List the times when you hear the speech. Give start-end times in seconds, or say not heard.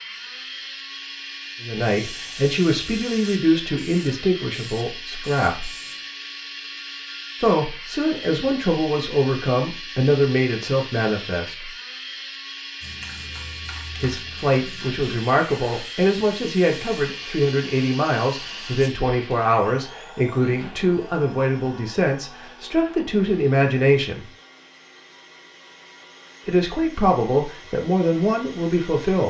1.6-5.8, 7.4-11.7, 14.0-24.2, 26.4-29.2.